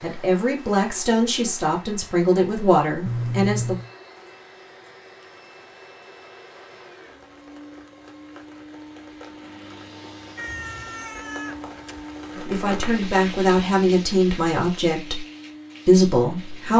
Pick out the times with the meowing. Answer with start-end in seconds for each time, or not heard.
3.0-3.9, 10.3-11.9.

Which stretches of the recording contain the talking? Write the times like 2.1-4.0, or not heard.
0.0-3.8, 12.4-15.2, 15.8-16.7.